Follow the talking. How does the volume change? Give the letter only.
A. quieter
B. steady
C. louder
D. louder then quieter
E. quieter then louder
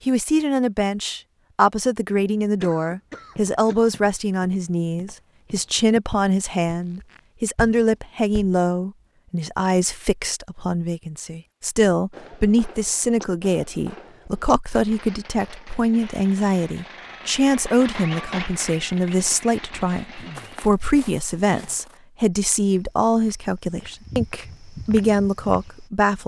B.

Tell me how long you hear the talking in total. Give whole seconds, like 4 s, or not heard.
26 s.